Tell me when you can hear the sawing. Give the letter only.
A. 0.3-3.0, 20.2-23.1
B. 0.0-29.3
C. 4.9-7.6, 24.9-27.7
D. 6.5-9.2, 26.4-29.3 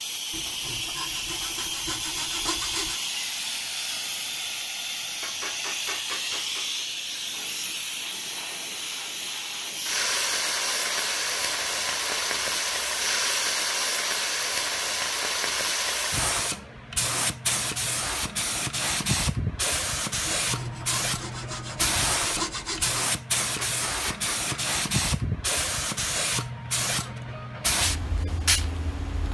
A.